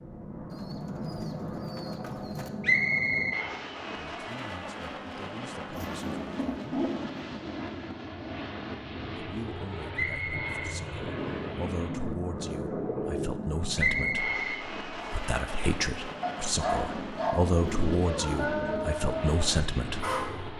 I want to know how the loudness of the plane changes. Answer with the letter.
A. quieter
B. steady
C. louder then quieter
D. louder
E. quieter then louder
B.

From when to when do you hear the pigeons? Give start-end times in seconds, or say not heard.
0.5-2.5, 5.7-7.2, 11.0-13.3, 17.5-18.9.